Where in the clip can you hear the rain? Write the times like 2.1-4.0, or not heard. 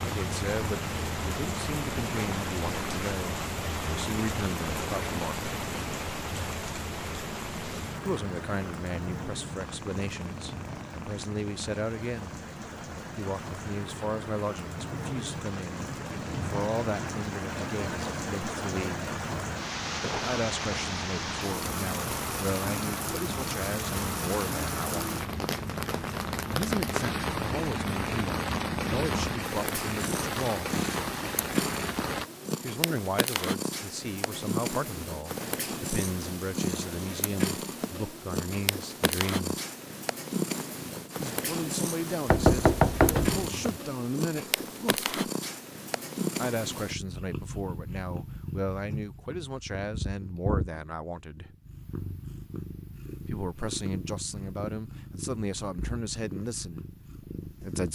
0.0-32.2.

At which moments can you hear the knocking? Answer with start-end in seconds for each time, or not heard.
42.3-43.8.